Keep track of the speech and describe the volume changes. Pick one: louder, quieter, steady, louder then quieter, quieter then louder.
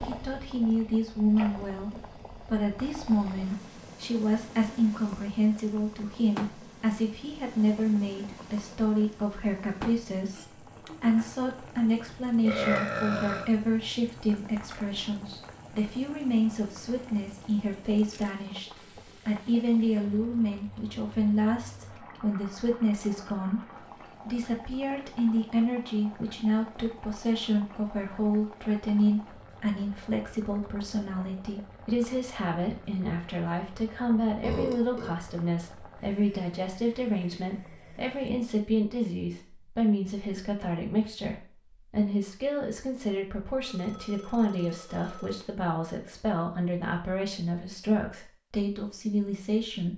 steady.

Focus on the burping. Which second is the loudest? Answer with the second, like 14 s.
13 s.